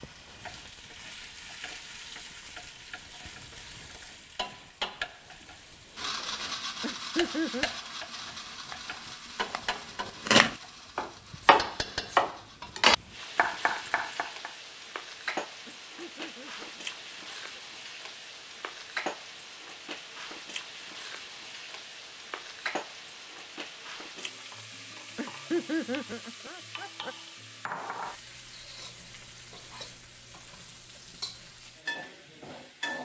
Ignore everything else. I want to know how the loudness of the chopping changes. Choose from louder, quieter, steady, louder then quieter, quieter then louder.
louder then quieter.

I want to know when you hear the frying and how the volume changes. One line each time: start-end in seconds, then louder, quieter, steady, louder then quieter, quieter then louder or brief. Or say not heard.
0.0-33.0 steady.